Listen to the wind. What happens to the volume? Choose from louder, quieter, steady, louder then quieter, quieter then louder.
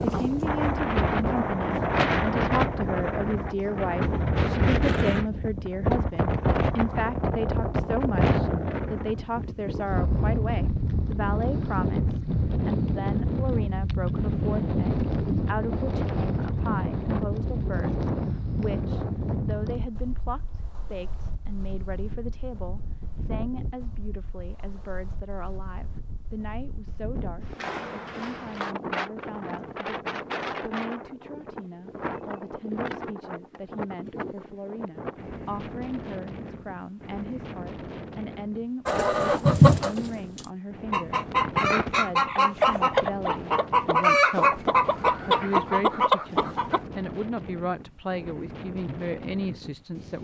quieter.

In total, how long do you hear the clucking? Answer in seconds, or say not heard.
8 s.